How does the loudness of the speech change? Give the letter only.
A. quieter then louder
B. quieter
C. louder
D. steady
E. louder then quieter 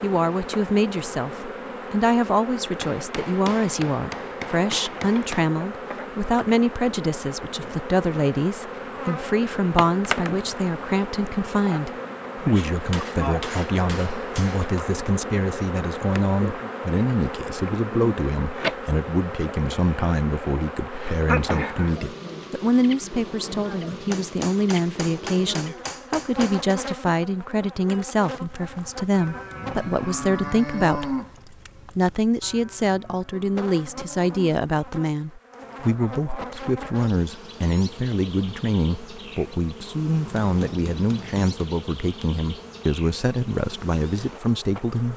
D.